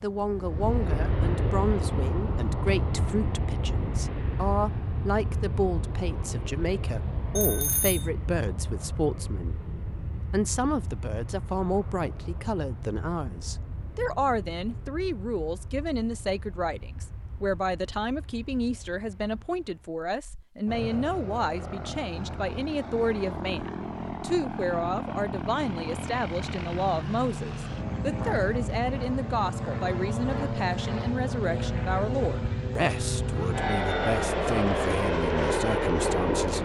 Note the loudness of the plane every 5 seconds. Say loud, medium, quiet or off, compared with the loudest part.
medium, medium, quiet, quiet, medium, medium, loud, loud.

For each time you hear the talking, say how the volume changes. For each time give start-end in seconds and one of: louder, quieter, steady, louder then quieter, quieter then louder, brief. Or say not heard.
0.0-36.6 steady.